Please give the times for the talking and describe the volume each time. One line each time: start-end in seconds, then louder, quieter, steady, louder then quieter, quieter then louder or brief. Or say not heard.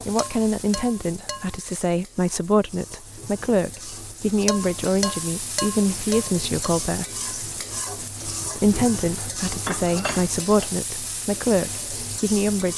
0.1-7.0 steady
8.6-12.7 louder then quieter.